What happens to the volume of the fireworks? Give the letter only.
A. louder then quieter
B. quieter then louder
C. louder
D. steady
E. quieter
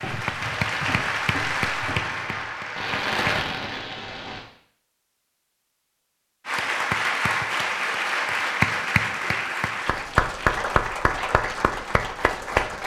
C.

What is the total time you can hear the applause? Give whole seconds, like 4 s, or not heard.
10 s.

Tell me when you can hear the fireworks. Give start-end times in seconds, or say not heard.
0.0-4.5.